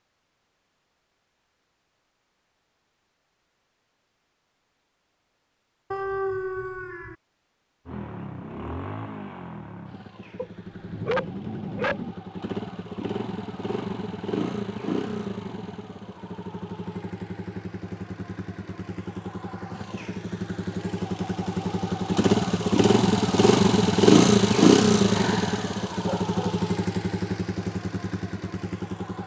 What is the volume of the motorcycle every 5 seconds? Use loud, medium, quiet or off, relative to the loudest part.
off, quiet, quiet, quiet, loud, medium.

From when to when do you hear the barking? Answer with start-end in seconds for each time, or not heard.
5.9-7.2, 10.3-12.2, 25.1-26.6.